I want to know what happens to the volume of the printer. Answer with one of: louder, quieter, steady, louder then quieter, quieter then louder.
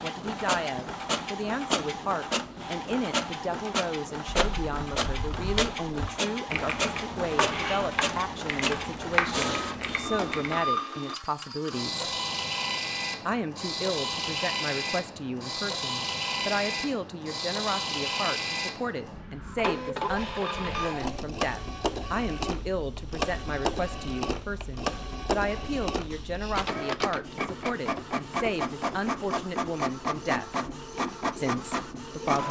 steady.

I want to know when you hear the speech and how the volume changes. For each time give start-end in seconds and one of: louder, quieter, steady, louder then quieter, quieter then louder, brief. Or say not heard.
0.0-12.1 steady
13.2-30.4 steady
31.4-32.4 brief.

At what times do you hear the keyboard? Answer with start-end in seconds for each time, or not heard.
4.3-10.8.